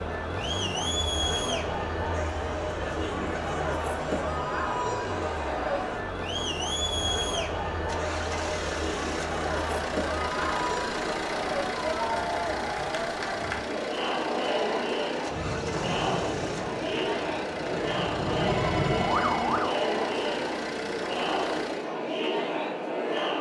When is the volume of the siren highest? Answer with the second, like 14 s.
19 s.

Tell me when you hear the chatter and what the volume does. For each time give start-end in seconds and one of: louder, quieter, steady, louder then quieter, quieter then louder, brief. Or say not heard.
0.0-23.3 steady.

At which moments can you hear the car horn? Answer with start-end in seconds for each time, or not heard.
not heard.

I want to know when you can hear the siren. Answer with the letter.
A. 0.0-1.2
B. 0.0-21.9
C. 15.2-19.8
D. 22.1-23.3
C.